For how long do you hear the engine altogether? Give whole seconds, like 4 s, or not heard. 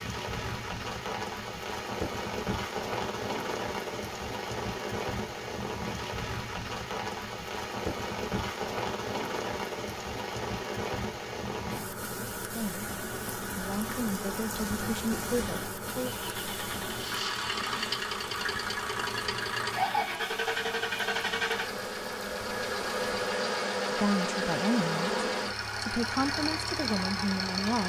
12 s.